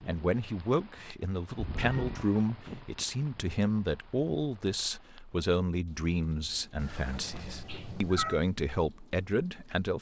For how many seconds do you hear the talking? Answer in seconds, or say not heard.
10 s.